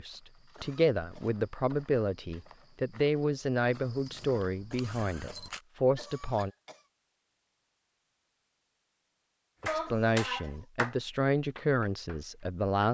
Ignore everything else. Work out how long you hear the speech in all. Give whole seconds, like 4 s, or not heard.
10 s.